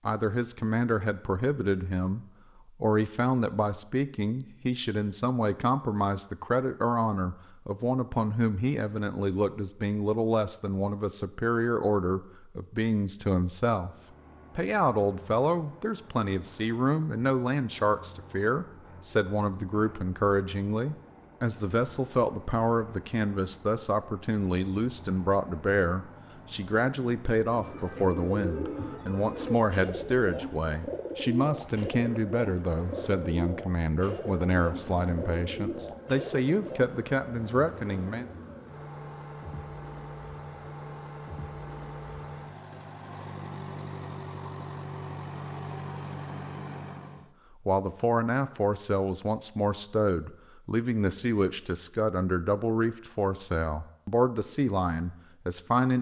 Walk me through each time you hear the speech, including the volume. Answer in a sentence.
You can hear the speech from 0.1 to 13.9 s, at a steady volume; from 14.6 to 38.2 s, at a steady volume; and from 47.6 to 55.9 s, at a steady volume.